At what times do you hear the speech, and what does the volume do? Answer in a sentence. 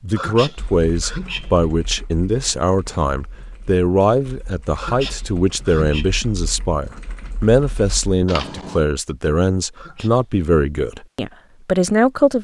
The speech can be heard from 0.0 to 12.3 s, at a steady volume.